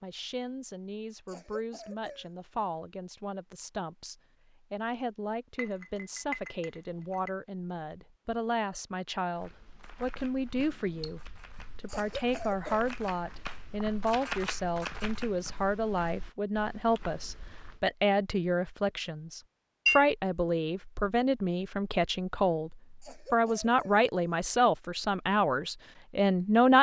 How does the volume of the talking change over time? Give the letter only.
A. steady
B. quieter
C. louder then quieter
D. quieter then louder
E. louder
E.